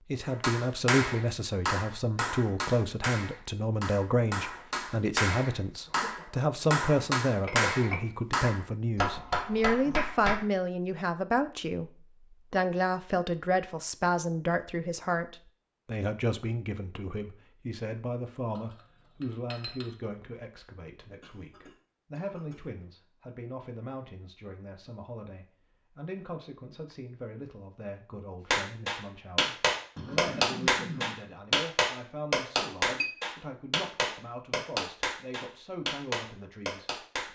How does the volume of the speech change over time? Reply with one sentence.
The loudness of the speech goes down.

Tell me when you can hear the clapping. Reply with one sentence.
The clapping can be heard from 0.2 to 10.4 s and from 28.5 to 37.3 s.